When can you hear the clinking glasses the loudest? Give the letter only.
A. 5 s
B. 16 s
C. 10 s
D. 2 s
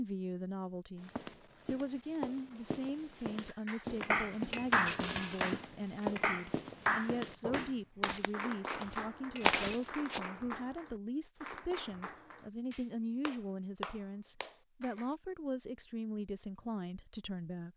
A.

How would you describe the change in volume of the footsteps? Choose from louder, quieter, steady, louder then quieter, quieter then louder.
louder.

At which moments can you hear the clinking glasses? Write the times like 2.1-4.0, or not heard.
4.5-6.0, 9.3-9.9.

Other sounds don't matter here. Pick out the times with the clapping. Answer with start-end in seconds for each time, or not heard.
3.5-15.1.